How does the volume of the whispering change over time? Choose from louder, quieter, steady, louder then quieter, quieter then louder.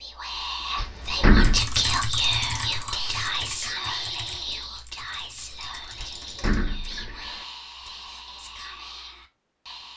quieter.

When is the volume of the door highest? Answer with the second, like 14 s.
1 s.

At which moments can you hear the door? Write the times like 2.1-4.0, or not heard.
0.8-1.6, 6.0-7.5.